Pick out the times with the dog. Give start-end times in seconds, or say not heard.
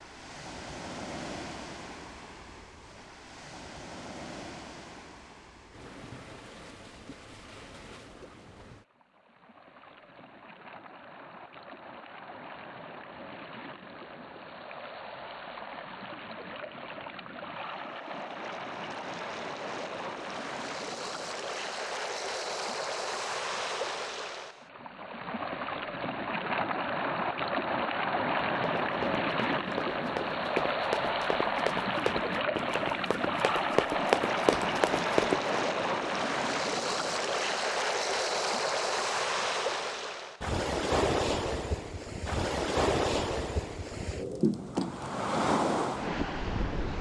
not heard.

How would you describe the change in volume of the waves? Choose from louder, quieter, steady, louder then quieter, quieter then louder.
louder.